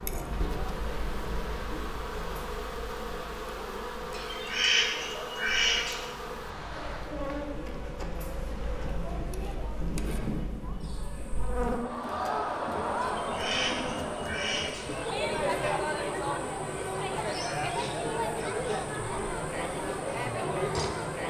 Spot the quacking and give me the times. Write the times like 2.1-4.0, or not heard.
4.1-6.0, 13.0-14.8.